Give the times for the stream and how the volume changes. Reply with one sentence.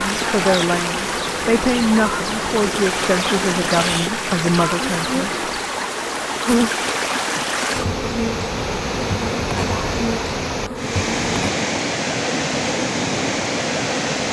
You can hear the stream from 0.0 to 14.2 s, at a steady volume.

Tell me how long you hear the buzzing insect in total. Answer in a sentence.
The buzzing insect can be heard for 14 seconds in total.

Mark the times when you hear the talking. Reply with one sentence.
The talking can be heard from 0.0 to 5.2 s.